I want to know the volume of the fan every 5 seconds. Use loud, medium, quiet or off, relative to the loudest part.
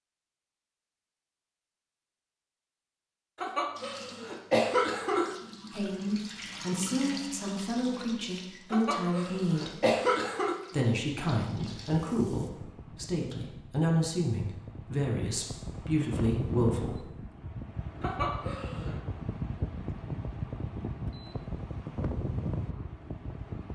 off, off, medium, loud, loud.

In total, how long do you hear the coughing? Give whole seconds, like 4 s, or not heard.
5 s.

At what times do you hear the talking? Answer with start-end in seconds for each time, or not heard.
5.7-9.8, 10.7-17.1.